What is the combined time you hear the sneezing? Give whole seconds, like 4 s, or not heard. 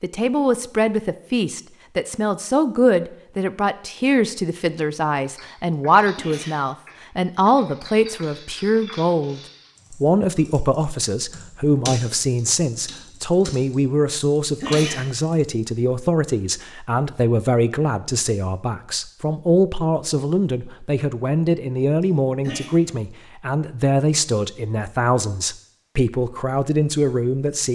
2 s.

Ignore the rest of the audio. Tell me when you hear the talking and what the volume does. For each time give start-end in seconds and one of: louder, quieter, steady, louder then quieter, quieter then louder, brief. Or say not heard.
0.0-27.7 steady.